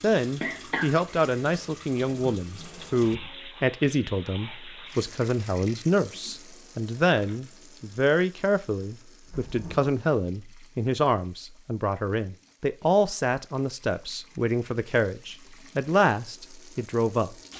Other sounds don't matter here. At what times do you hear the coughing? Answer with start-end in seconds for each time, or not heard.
0.4-1.4.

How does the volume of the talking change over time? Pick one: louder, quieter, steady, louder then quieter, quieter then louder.
steady.